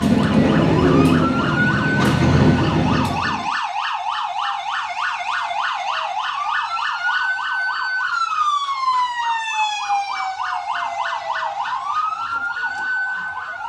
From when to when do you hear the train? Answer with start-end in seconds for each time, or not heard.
0.0-3.5.